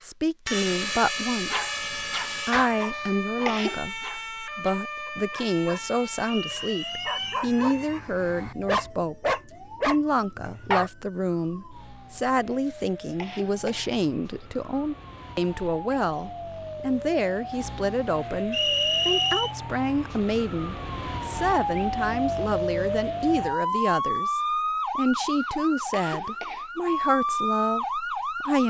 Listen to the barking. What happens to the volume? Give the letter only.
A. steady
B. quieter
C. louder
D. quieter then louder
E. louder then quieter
D.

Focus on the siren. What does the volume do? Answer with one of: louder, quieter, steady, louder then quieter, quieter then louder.
quieter then louder.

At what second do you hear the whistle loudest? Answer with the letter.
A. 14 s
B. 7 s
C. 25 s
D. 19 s
D.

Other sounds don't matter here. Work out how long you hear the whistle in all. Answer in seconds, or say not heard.
2 s.